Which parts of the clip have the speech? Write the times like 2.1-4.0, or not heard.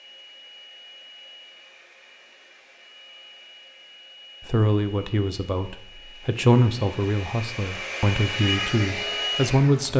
4.5-9.9.